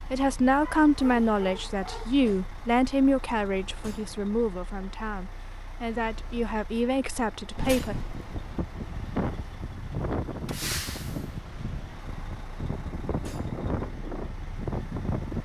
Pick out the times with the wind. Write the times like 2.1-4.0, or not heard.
7.5-15.3.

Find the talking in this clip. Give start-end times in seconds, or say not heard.
0.1-8.0.